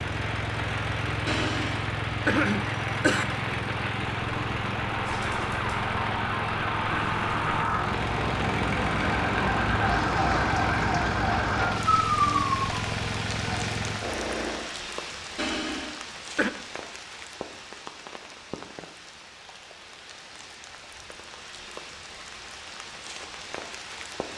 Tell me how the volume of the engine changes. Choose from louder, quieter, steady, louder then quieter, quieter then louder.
steady.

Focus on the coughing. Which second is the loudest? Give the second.
2 s.